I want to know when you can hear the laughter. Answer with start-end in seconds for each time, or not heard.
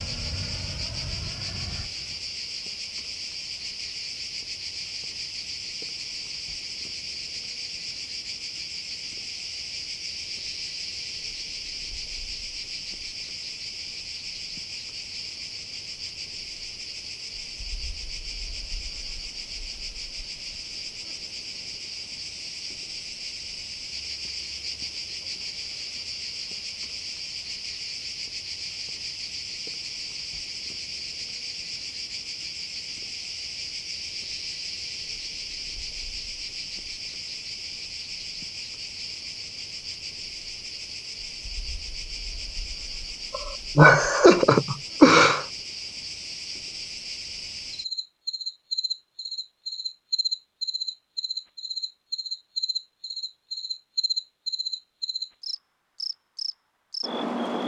43.3-45.5.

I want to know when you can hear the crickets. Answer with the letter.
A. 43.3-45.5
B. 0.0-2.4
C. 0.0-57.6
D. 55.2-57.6
C.